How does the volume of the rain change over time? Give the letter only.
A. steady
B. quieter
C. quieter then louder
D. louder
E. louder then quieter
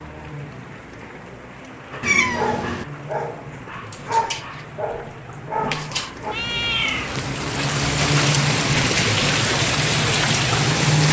D.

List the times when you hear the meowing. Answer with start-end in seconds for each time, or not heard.
2.0-2.9, 6.3-7.3.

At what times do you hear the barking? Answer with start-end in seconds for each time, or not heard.
1.9-6.3.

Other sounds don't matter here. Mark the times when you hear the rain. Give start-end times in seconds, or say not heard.
0.0-11.0.